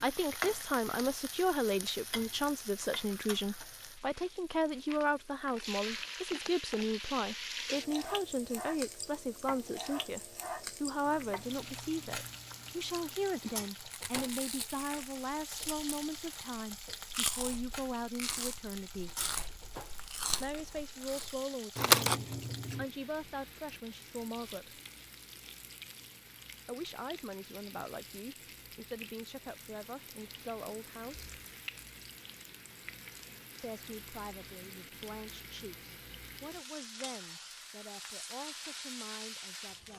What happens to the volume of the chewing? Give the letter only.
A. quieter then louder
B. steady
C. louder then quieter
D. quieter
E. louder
E.